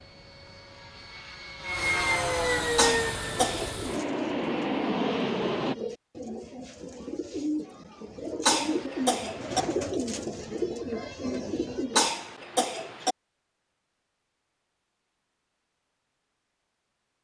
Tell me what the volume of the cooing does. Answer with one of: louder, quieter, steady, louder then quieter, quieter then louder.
louder.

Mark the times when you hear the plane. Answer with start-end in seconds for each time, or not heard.
0.0-5.8.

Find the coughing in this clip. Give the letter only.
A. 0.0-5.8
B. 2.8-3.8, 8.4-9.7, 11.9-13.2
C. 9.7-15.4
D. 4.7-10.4
B.